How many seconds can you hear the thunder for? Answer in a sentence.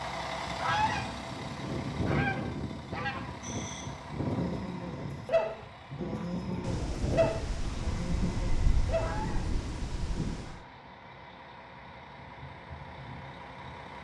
You can hear the thunder for 4 seconds altogether.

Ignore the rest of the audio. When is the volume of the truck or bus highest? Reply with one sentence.
The loudest moment of the truck or bus is at 2 seconds.